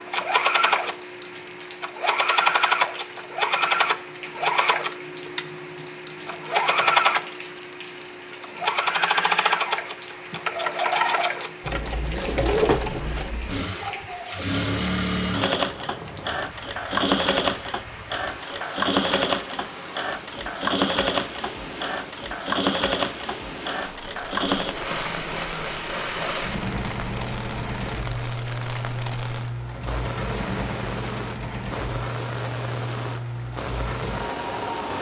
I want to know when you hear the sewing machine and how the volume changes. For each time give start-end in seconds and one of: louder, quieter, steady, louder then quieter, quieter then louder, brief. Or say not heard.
0.0-34.9 quieter.